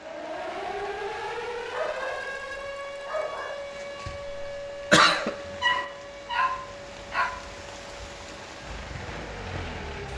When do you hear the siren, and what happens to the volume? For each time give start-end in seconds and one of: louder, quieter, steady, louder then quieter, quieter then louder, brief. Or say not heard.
0.0-10.1 quieter.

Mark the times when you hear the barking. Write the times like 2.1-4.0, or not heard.
1.7-3.5, 5.5-7.3.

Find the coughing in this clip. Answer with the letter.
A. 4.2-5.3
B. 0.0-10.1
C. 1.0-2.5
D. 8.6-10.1
A.